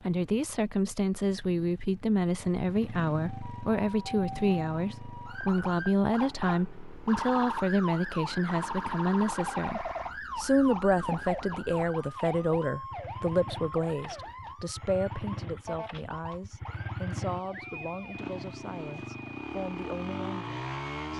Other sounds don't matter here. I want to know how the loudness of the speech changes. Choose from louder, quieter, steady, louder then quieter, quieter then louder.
quieter.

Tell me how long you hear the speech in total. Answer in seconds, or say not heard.
21 s.